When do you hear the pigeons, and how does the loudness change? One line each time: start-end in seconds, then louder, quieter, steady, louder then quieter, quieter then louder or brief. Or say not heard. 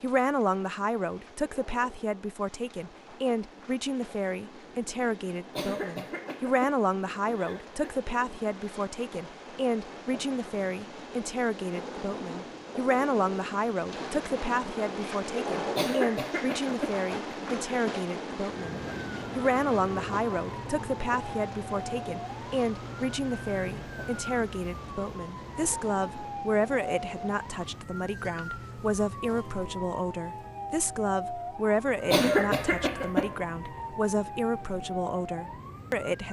not heard.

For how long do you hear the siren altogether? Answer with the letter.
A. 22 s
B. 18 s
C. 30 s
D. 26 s
B.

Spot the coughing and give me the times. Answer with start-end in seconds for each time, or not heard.
5.5-8.0, 15.8-17.6, 32.1-33.4.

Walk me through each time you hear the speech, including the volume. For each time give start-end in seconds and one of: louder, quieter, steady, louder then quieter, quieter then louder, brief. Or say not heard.
0.0-36.2 steady.